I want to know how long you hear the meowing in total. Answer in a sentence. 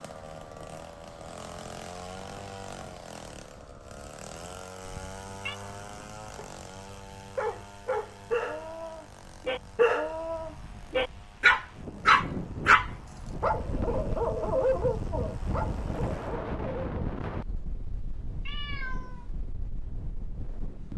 You can hear the meowing for 2 seconds altogether.